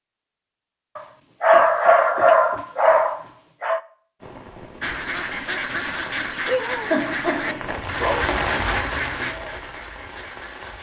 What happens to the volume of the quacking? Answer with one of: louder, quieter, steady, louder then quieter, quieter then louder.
quieter.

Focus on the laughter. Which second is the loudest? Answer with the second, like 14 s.
7 s.